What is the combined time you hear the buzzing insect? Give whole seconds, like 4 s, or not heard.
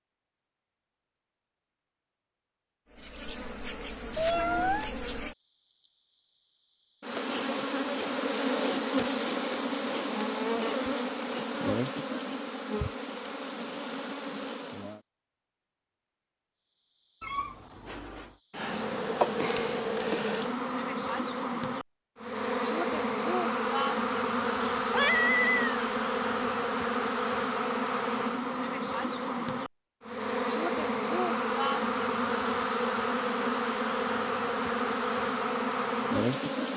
32 s.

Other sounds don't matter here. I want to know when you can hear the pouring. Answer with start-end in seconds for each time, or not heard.
not heard.